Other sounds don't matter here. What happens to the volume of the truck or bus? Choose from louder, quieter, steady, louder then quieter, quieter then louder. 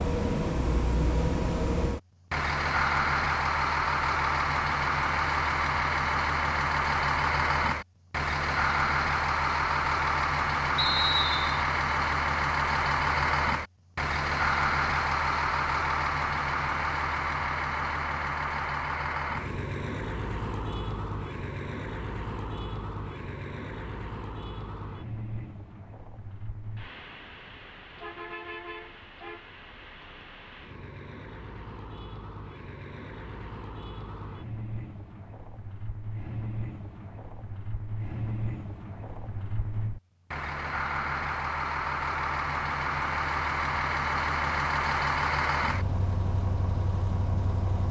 quieter then louder.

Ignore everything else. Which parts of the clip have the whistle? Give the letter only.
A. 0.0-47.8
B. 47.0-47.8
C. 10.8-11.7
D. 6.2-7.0
C.